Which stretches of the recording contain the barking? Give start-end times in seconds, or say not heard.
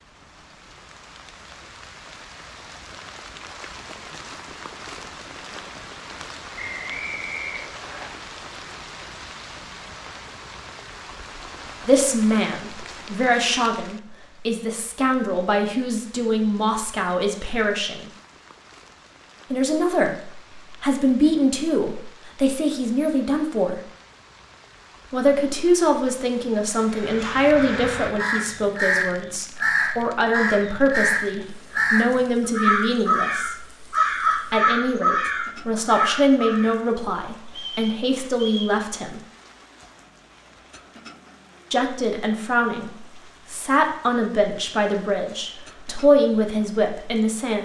not heard.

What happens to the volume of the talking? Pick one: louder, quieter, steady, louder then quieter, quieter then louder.
steady.